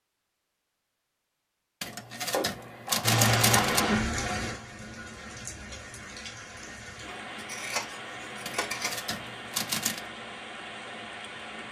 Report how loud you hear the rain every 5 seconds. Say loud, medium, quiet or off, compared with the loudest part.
loud, quiet, quiet.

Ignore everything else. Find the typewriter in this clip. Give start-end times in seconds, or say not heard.
1.8-3.9, 8.4-10.0.